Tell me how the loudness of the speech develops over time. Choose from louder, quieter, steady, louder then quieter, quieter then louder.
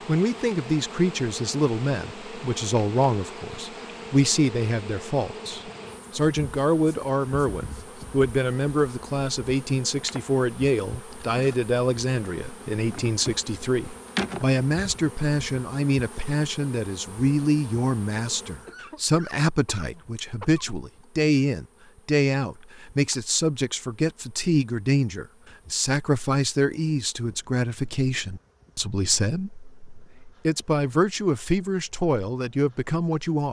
steady.